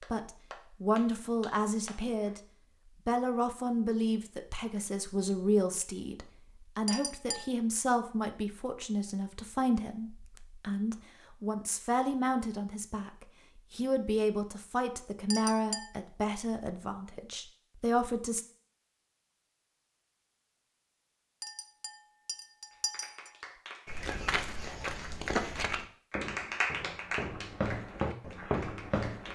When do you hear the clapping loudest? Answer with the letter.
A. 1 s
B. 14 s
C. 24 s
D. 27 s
D.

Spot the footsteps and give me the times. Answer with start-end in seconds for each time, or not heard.
23.9-29.3.